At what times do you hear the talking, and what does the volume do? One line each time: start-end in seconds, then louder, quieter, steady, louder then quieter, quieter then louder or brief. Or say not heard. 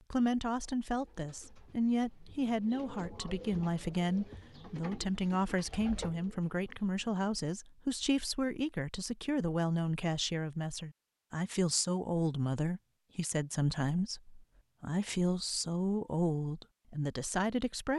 0.1-17.9 steady.